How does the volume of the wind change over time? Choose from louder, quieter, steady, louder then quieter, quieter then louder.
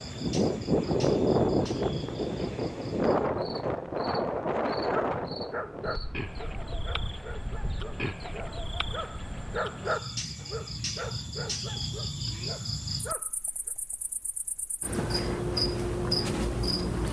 quieter.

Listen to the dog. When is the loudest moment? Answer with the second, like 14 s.
10 s.